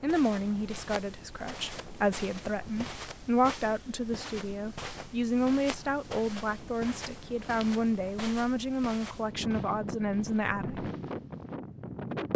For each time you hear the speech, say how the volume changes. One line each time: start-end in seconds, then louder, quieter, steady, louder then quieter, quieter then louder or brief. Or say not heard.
0.0-10.9 steady.